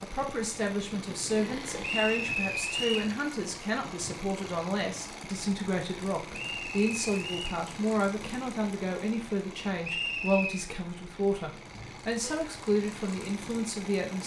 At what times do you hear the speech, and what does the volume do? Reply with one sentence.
The speech can be heard from 0.0 to 14.2 s, at a steady volume.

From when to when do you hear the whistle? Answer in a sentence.
You can hear the whistle from 1.8 to 3.1 s, from 6.3 to 7.6 s and from 9.8 to 10.6 s.